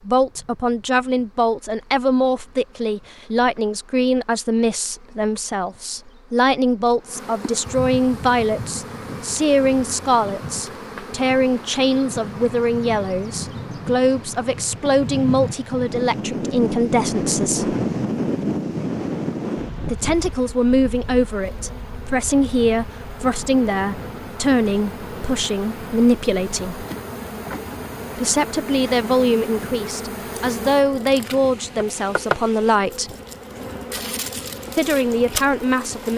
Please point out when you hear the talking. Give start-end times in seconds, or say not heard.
0.1-17.8, 19.9-26.9, 28.1-33.1, 34.8-36.1.